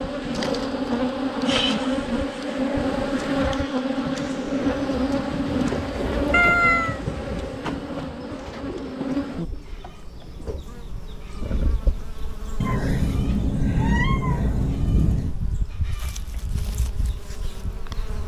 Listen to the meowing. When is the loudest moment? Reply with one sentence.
The volume of the meowing peaks at 7 seconds.